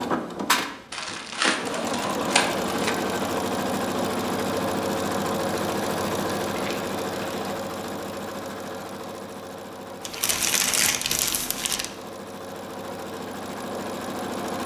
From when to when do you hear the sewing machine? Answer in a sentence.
The sewing machine can be heard from 0.0 to 14.6 s.